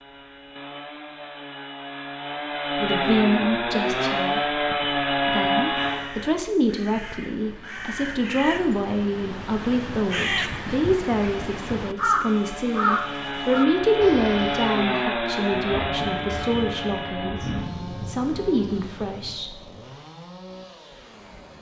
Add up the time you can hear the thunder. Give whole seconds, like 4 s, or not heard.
4 s.